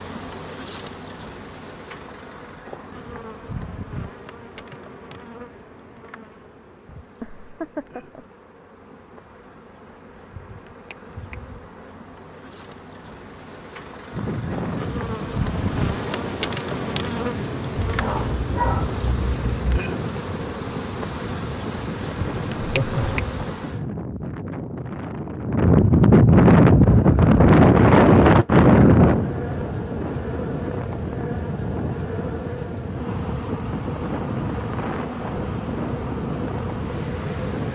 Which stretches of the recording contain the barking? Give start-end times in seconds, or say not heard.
17.8-19.8.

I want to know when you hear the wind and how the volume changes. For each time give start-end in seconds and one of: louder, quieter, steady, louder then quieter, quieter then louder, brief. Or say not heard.
14.1-37.7 louder then quieter.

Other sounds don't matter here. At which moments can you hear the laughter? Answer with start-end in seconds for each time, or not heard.
7.2-8.2, 22.6-23.2.